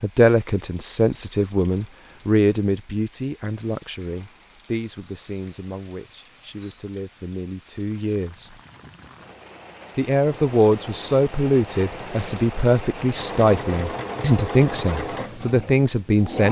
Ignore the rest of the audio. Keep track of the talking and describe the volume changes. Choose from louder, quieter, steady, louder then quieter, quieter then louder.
quieter then louder.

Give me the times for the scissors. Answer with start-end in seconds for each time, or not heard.
not heard.